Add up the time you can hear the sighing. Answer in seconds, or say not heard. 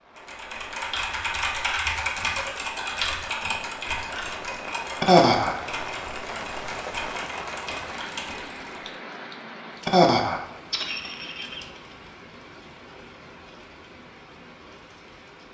2 s.